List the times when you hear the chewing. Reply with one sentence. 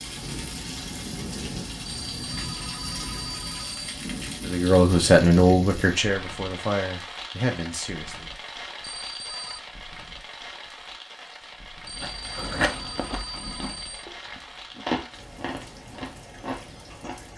You can hear the chewing from 11.9 to 17.2 s.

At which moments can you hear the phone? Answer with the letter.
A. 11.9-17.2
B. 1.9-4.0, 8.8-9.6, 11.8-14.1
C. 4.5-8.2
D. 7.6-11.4
B.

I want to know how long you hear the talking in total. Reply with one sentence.
You can hear the talking for 4 seconds altogether.